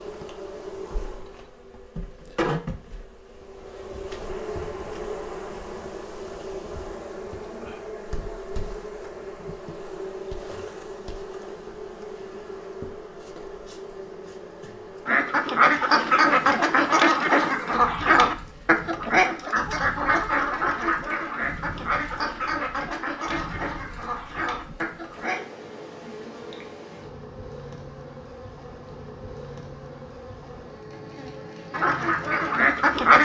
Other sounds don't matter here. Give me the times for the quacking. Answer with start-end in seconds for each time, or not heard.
15.1-25.4, 31.7-33.2.